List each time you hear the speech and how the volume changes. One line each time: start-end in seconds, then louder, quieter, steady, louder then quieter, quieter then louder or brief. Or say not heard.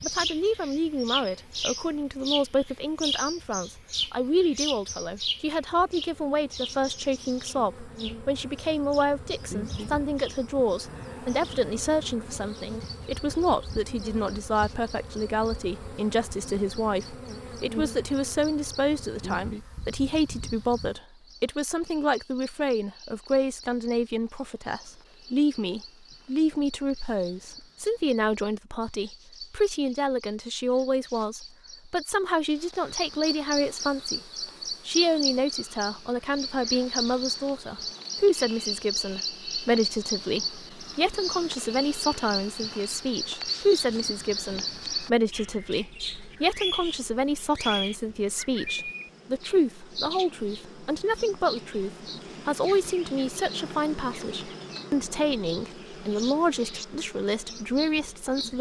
0.0-34.2 steady
34.9-58.5 steady.